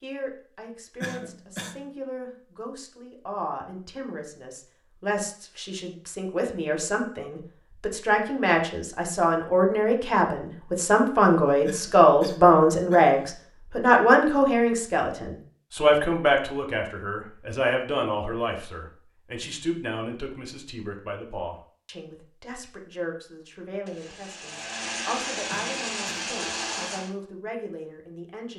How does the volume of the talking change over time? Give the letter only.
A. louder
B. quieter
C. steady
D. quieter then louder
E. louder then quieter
E.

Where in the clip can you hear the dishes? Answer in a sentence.
You can't hear the dishes here.